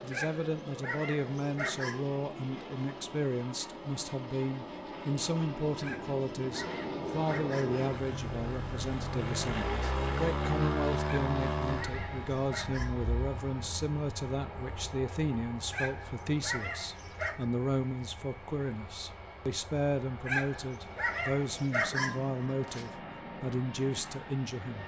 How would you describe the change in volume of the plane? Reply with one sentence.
The volume of the plane goes up, then down.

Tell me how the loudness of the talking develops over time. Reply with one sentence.
The loudness of the talking stays about the same.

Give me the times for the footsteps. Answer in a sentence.
The footsteps can't be heard in this clip.